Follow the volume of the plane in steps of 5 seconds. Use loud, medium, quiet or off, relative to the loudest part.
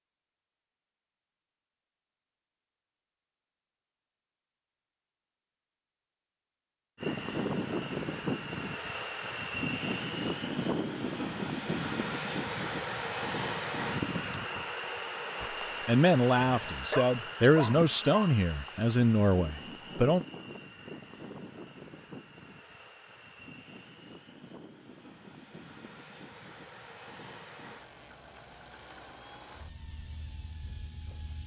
off, loud, loud, medium, quiet, quiet, quiet.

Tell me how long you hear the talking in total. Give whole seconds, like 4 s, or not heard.
5 s.